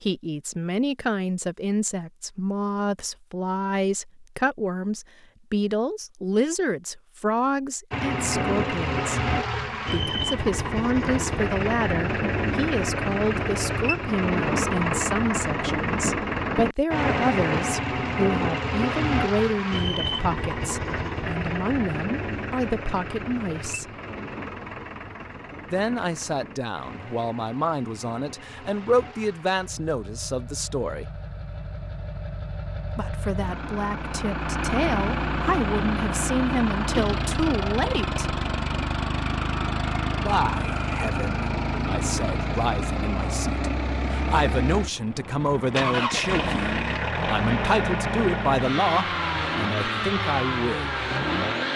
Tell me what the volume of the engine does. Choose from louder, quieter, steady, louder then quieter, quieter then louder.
quieter then louder.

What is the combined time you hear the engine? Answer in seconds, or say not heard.
44 s.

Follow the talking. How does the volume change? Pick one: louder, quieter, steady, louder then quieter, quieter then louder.
steady.